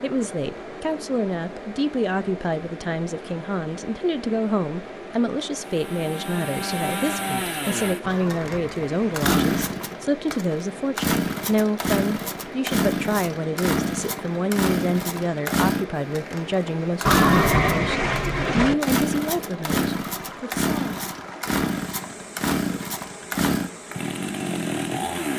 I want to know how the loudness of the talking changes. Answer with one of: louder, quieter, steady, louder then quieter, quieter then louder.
steady.